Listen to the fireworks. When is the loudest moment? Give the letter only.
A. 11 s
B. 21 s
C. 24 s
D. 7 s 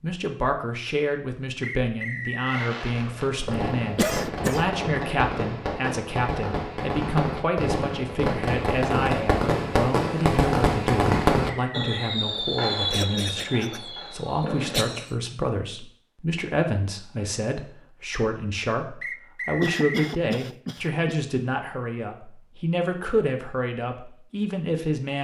A.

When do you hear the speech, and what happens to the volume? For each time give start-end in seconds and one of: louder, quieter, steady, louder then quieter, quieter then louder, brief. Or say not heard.
0.0-25.2 steady.